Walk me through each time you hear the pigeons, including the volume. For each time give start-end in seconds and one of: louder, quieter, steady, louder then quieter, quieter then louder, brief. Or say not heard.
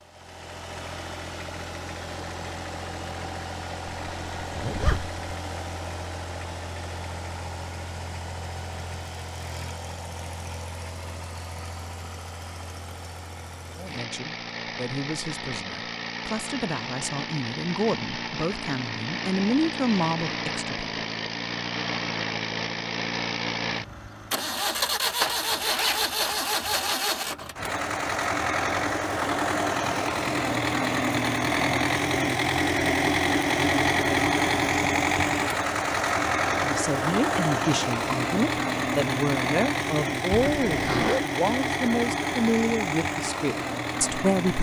not heard.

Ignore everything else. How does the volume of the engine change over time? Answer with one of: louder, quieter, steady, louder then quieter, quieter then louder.
louder.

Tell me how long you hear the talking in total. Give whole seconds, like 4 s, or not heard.
15 s.